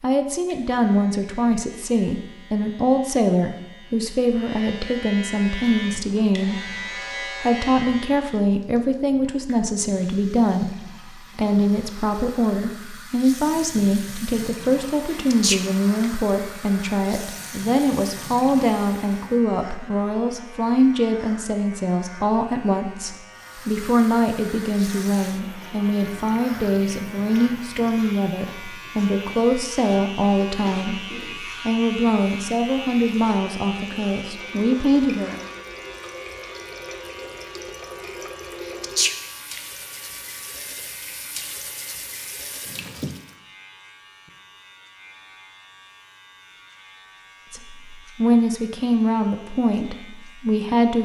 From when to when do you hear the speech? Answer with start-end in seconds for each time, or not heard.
0.0-35.4, 47.5-51.0.